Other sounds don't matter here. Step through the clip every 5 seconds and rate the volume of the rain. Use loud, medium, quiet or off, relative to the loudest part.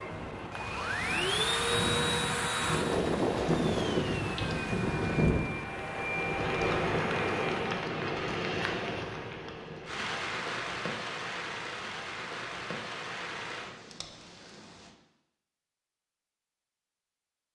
loud, loud, medium, off.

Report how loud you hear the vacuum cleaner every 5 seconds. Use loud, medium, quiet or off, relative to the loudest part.
loud, medium, off, off.